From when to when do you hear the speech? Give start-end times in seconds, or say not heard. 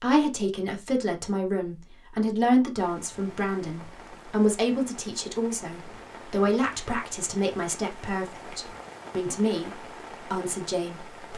0.0-11.3.